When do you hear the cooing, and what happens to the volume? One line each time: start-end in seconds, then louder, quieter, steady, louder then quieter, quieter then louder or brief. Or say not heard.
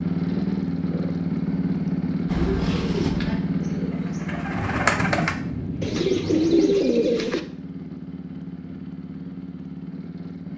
2.2-7.4 quieter then louder.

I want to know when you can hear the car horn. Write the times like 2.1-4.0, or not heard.
not heard.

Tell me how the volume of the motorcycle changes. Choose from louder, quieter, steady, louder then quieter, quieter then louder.
quieter.